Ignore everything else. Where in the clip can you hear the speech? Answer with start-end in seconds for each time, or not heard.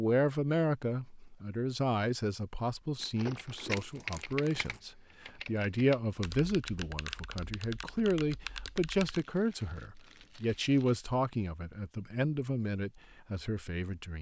0.0-14.1.